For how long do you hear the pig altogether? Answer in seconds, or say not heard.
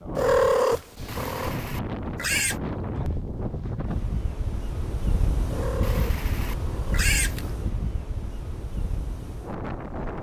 3 s.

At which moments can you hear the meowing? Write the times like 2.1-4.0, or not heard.
0.1-1.6, 5.5-7.1.